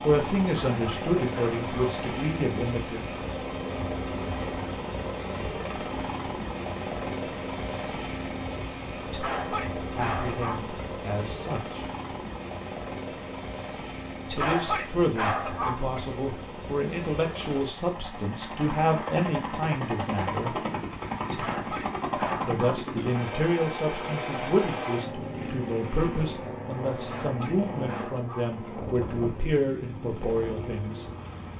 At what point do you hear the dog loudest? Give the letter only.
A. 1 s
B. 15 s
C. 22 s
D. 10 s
B.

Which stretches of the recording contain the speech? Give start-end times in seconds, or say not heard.
0.0-3.0, 9.8-11.8, 14.3-20.6, 22.4-31.1.